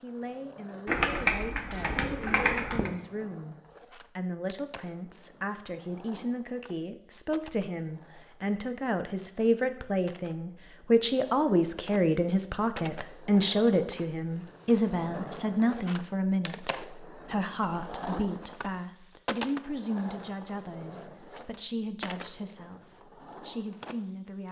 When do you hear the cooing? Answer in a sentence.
The cooing can be heard from 0.8 to 2.9 s.